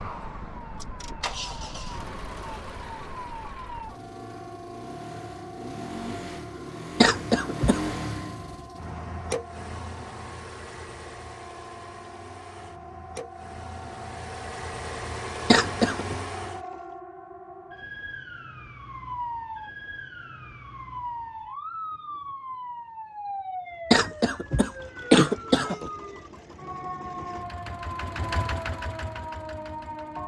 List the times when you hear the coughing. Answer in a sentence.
You can hear the coughing from 7.0 to 7.8 s, from 15.5 to 16.1 s and from 23.9 to 25.9 s.